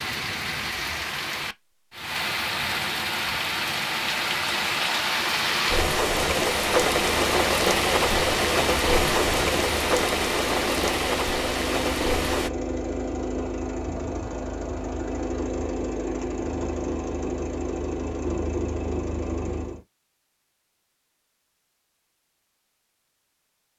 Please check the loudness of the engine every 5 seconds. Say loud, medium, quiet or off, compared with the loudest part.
off, medium, loud, loud, off.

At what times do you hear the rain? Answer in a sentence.
The rain can be heard from 0.0 to 12.5 s.